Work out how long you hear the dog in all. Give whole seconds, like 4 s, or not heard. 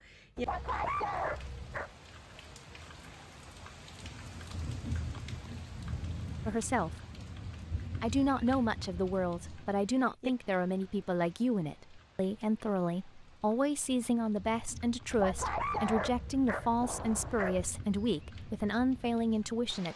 4 s.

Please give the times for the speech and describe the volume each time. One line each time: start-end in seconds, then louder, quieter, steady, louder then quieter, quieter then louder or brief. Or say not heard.
6.5-6.9 brief
8.0-19.9 steady.